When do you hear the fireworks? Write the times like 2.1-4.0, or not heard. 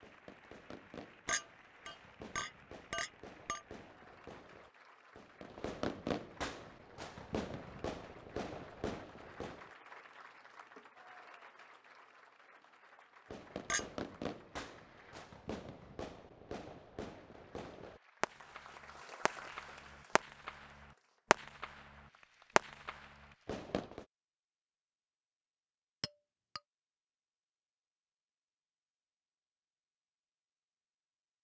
0.0-9.7, 13.3-24.1.